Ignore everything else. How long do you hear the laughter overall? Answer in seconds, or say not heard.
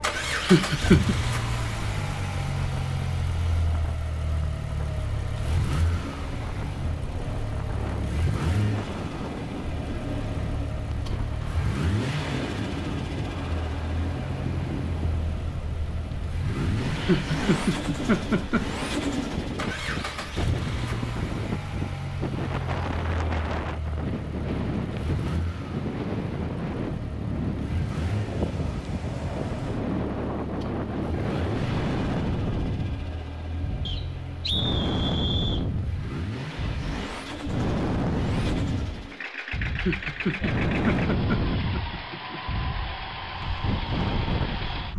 5 s.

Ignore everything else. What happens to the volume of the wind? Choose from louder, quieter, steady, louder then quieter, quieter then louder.
louder.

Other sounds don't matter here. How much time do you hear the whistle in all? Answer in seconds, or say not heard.
2 s.